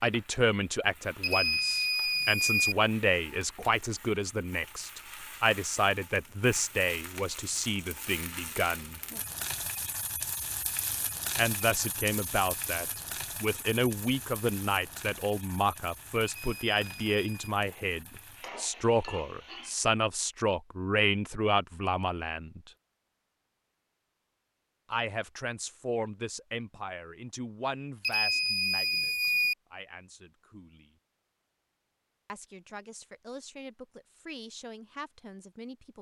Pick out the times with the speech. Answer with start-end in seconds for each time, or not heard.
0.0-9.0, 11.3-22.6, 24.9-30.9, 32.2-35.9.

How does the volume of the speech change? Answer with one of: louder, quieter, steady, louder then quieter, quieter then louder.
quieter.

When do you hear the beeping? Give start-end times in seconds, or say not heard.
1.2-2.8, 16.2-17.5, 28.0-29.6.